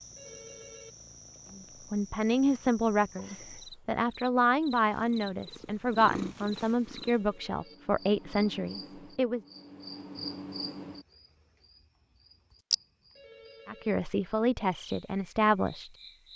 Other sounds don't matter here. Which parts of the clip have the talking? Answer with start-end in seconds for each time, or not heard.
1.6-9.4, 13.7-15.9.